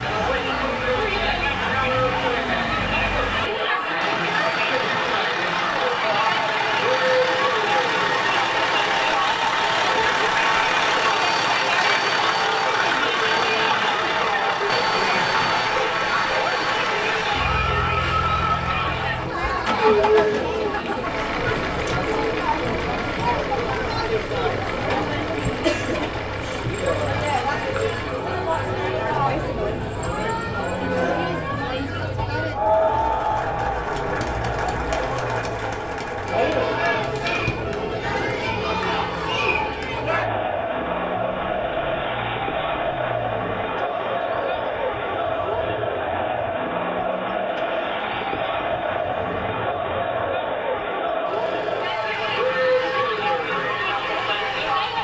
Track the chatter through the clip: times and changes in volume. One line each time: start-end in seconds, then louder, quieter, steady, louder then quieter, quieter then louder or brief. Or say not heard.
0.0-54.9 steady.